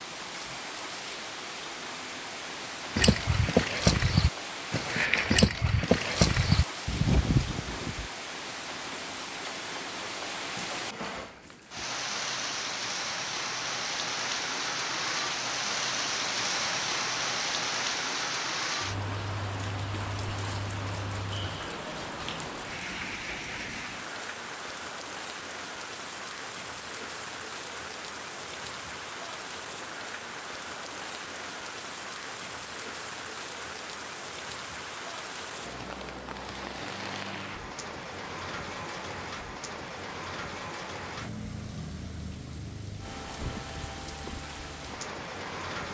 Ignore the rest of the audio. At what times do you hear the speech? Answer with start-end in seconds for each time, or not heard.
not heard.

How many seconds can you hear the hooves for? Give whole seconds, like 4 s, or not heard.
5 s.